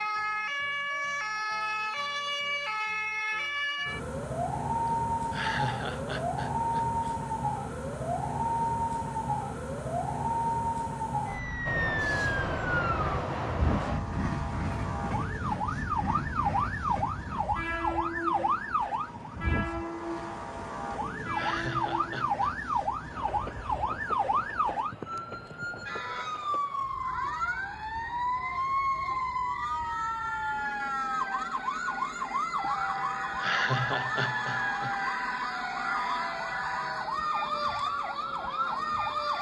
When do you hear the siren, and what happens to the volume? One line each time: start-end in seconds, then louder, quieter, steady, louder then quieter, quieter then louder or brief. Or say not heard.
0.0-39.3 steady.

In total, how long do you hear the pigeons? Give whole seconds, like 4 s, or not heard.
not heard.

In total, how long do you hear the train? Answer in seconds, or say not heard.
28 s.